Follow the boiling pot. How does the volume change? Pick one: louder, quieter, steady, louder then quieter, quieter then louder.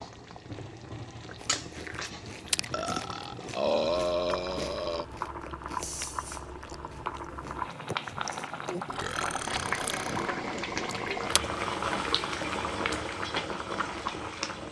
louder.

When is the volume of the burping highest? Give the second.
4 s.